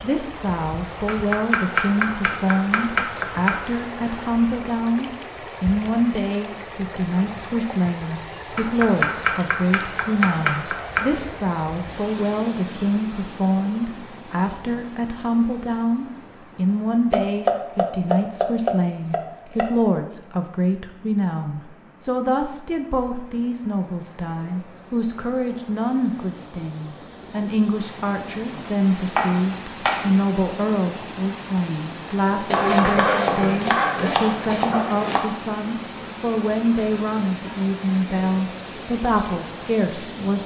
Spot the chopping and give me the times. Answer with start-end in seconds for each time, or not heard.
1.1-3.8, 8.6-11.2, 17.1-19.6, 29.1-30.2, 32.5-35.3.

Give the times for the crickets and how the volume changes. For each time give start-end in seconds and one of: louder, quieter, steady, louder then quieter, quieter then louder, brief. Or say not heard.
not heard.